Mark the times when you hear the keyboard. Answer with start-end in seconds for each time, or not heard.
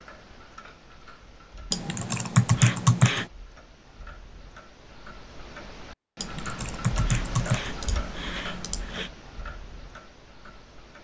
1.7-3.2, 6.2-9.1.